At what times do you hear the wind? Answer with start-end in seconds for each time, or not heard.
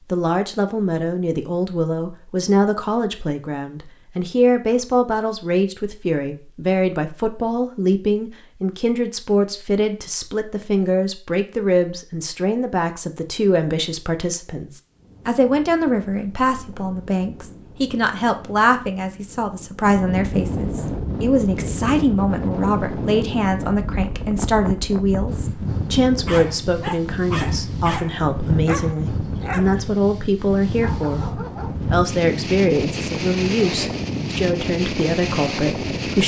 14.9-36.2.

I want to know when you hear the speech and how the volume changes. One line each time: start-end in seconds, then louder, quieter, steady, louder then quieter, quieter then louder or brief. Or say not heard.
0.1-36.2 steady.